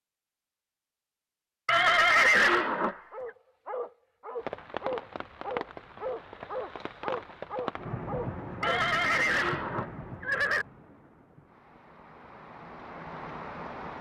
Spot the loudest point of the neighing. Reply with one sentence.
The loudest moment of the neighing is at 2 seconds.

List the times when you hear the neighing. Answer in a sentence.
You can hear the neighing from 1.6 to 3.0 s and from 8.6 to 10.7 s.